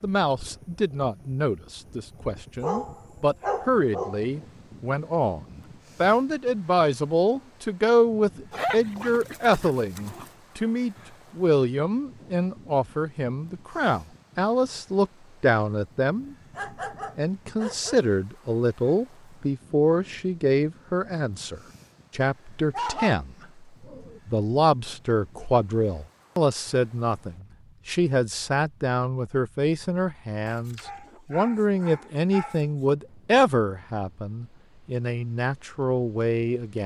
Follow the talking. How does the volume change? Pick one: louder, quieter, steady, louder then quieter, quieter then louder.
steady.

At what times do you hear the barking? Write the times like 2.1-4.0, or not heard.
2.6-4.2, 8.5-10.3, 16.6-17.9, 22.7-24.2, 30.4-32.6.